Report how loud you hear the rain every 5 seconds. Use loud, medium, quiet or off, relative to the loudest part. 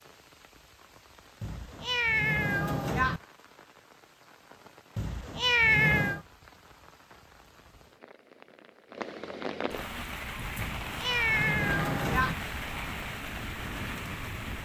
quiet, medium, loud.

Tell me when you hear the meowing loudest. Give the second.
6 s.